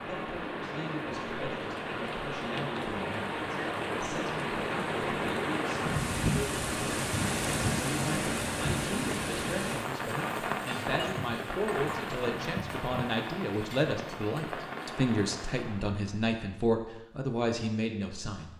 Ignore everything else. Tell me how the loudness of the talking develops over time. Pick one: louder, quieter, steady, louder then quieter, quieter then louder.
louder.